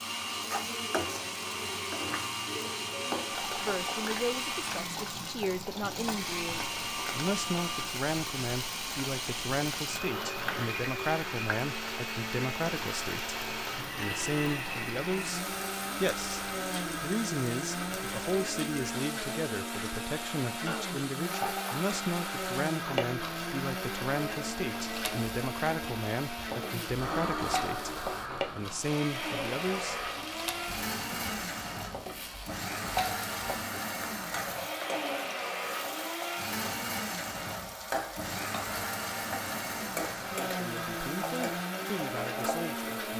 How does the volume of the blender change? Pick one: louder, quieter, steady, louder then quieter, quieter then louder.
steady.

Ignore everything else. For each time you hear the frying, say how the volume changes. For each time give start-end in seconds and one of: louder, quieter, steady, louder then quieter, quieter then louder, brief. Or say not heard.
0.0-43.1 steady.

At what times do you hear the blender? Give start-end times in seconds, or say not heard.
0.0-43.1.